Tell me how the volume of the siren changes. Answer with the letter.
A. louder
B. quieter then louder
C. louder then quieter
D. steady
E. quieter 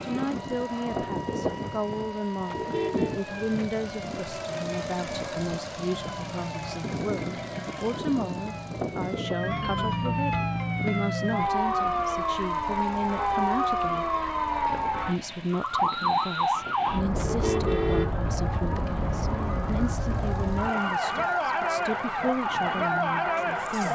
A.